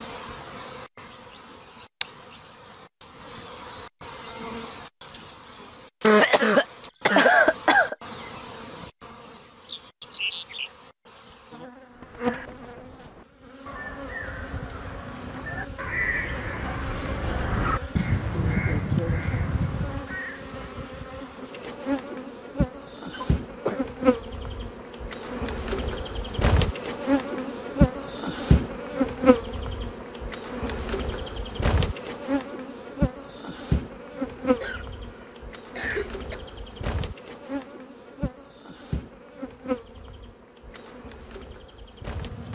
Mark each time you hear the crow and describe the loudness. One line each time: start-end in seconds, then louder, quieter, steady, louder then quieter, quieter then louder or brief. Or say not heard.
11.8-20.4 louder.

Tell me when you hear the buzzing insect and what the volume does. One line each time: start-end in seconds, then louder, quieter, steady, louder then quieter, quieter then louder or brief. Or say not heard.
0.0-42.5 louder then quieter.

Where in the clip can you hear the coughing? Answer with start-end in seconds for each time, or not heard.
6.0-8.0, 23.1-23.8, 34.4-36.4.